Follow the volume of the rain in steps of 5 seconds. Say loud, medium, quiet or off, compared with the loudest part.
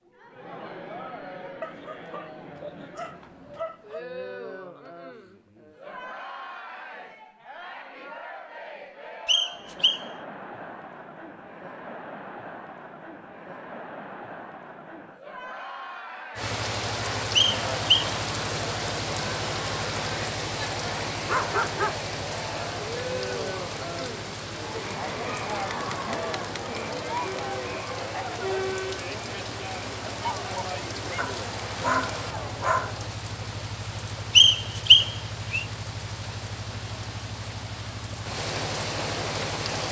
off, off, off, loud, loud, medium, medium, loud.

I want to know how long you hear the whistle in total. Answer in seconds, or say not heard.
3 s.